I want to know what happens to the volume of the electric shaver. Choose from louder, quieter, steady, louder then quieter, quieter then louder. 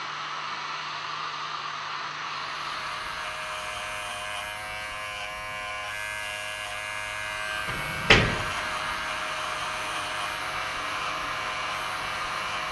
steady.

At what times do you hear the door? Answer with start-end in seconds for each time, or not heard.
7.7-8.6.